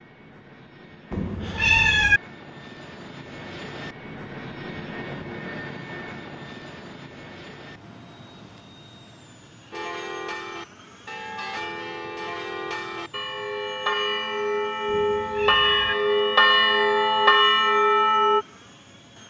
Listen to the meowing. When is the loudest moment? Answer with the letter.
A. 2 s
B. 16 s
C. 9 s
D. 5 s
A.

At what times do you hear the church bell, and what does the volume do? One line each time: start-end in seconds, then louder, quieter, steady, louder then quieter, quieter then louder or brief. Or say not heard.
9.7-18.4 louder.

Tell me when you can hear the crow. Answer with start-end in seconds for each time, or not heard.
not heard.